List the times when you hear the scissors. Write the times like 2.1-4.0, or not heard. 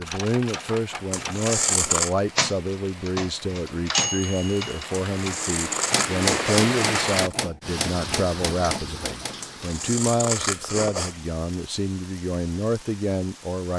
1.1-2.1, 5.2-7.3, 9.4-11.2.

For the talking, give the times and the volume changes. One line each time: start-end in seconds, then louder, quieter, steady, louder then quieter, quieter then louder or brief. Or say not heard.
0.0-13.7 steady.